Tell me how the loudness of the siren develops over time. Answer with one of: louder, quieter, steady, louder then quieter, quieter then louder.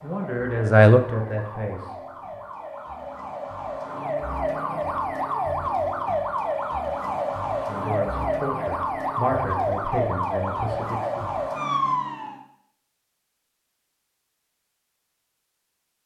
louder.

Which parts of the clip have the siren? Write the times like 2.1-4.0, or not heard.
0.0-12.4.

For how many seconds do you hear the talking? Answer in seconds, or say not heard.
6 s.